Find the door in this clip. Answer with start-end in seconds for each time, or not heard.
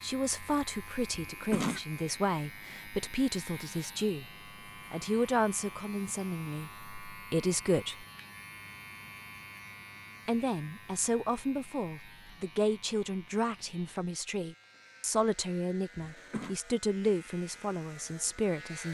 not heard.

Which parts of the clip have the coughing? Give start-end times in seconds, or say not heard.
1.1-1.8, 15.9-16.6.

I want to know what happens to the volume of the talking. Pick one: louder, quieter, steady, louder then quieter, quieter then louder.
steady.